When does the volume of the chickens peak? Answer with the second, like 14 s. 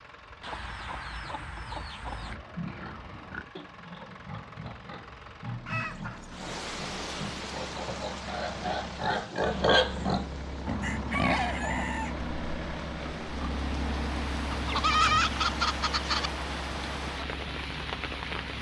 15 s.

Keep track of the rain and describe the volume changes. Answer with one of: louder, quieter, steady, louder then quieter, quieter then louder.
quieter then louder.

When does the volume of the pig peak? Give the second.
10 s.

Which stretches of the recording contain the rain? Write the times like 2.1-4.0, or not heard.
6.2-18.5.